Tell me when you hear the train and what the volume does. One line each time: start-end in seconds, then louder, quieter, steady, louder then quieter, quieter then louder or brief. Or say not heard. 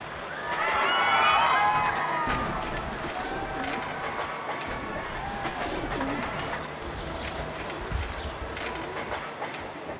0.0-9.9 steady.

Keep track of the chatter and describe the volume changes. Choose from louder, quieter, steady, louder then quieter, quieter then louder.
quieter.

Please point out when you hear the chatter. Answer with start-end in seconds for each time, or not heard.
0.2-6.5.